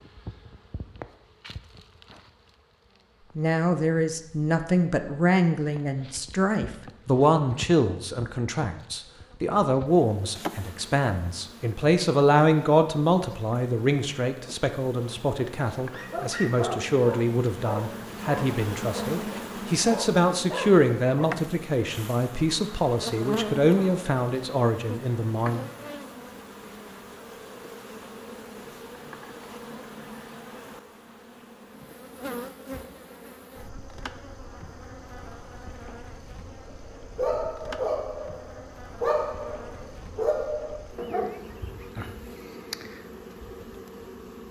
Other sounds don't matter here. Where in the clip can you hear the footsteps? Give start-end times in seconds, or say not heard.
not heard.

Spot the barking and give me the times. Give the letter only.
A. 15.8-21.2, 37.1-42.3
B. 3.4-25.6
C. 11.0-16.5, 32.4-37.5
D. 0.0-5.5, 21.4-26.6
A.